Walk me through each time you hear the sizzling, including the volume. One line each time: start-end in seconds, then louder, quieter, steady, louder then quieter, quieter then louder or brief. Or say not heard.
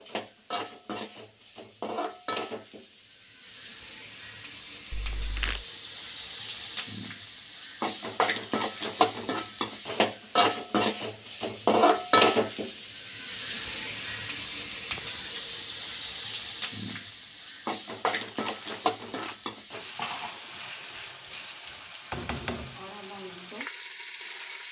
0.0-24.6 louder then quieter.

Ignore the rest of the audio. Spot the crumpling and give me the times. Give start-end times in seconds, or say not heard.
4.9-5.7, 18.2-19.4.